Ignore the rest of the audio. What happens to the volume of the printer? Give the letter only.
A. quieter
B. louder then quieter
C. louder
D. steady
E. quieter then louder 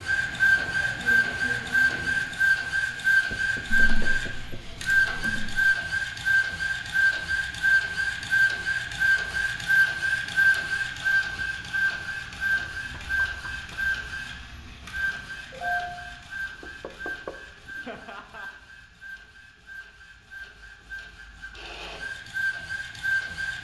A.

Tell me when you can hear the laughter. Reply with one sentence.
The laughter can be heard from 17.9 to 18.5 s.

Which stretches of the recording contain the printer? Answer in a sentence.
You can hear the printer from 0.0 to 23.6 s.